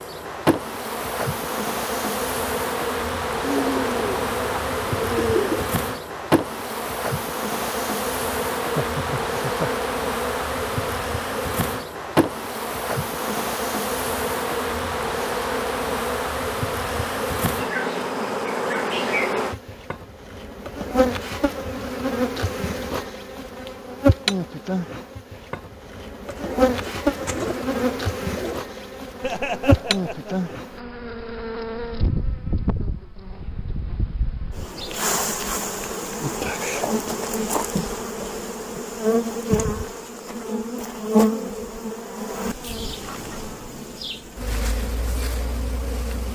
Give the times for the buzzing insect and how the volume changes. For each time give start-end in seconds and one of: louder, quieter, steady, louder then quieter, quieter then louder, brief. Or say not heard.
0.0-46.3 steady.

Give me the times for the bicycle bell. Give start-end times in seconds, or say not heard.
not heard.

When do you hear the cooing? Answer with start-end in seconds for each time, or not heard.
3.4-5.7, 26.2-28.7.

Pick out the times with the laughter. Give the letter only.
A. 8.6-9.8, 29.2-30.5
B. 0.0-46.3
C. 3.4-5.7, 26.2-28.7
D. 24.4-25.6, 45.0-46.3
A.